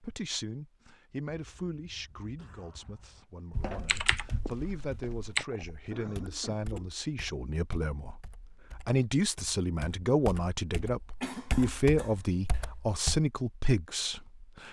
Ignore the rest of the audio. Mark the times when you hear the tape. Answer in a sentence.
The tape can't be heard in this clip.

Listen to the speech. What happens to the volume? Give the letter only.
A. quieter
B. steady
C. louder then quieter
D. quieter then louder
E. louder
E.